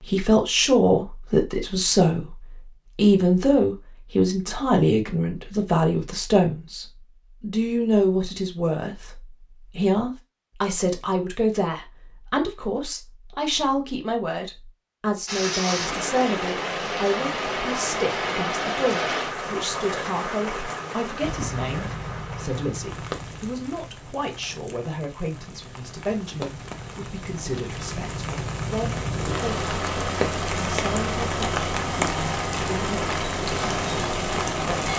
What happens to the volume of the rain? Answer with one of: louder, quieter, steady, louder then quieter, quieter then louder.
quieter then louder.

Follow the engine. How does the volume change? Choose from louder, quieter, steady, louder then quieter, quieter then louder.
quieter then louder.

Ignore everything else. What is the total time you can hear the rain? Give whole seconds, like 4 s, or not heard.
20 s.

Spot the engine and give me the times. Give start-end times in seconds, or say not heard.
21.2-34.9.